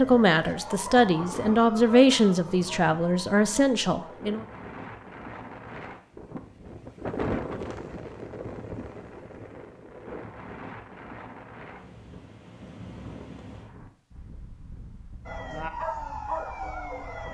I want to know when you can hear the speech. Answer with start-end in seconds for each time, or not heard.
0.0-4.5.